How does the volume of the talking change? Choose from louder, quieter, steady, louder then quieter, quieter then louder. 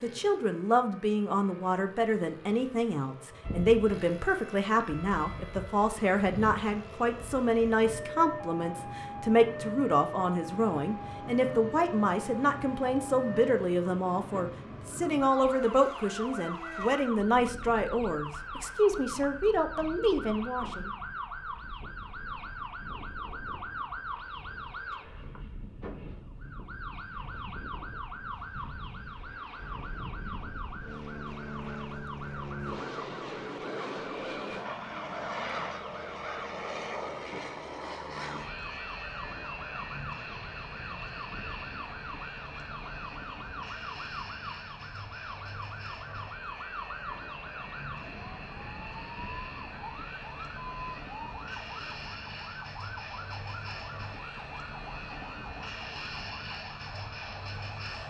steady.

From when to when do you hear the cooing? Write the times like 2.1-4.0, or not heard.
not heard.